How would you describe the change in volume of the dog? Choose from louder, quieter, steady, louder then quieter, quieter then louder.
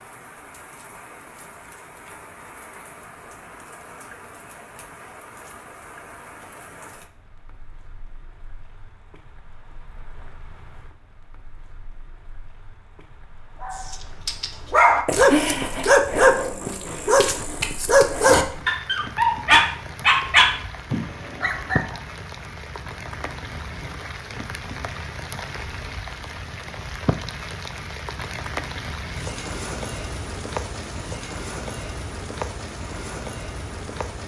steady.